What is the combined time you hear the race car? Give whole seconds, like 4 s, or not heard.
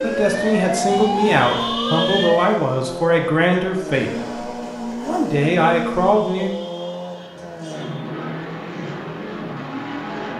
10 s.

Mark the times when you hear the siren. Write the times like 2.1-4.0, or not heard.
0.0-2.6.